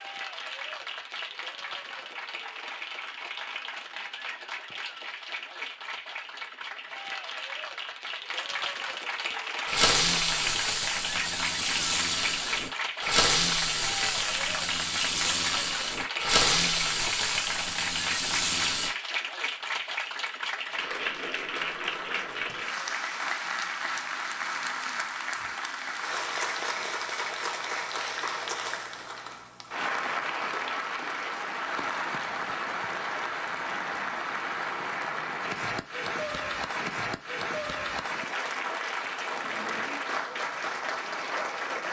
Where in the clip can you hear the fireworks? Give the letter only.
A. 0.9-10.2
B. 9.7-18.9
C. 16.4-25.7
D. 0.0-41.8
B.